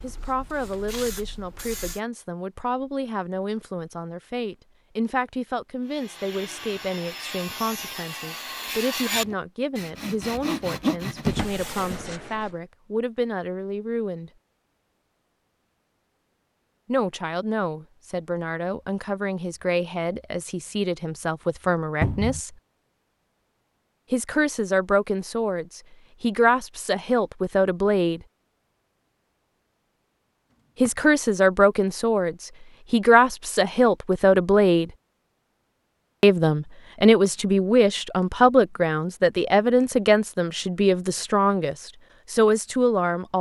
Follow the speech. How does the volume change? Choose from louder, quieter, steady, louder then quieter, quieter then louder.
louder.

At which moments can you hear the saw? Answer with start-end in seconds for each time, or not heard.
5.8-12.6.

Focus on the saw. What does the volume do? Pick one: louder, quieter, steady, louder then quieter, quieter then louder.
louder then quieter.